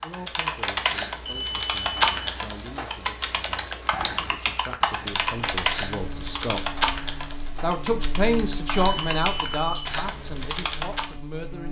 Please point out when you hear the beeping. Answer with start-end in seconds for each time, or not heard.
1.2-2.0, 8.7-9.8.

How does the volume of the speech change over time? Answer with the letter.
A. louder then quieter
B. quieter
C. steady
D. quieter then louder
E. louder
A.